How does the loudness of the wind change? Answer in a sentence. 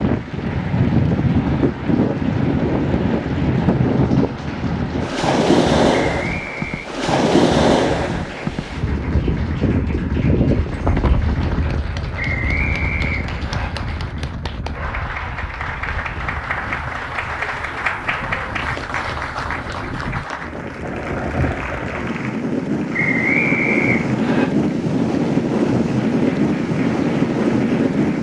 The volume of the wind goes down, then up.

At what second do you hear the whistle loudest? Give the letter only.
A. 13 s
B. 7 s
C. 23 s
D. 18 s
C.